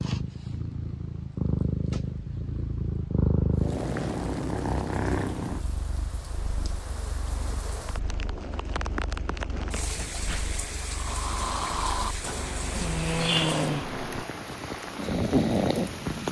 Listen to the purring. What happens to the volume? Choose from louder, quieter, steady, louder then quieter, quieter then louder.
quieter then louder.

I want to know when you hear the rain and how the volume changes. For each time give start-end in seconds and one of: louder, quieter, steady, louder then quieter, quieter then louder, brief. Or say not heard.
3.5-16.2 louder.